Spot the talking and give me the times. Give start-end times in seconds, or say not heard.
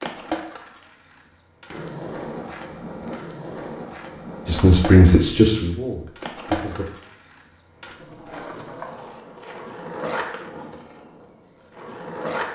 4.5-6.8.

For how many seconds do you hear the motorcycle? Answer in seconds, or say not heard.
not heard.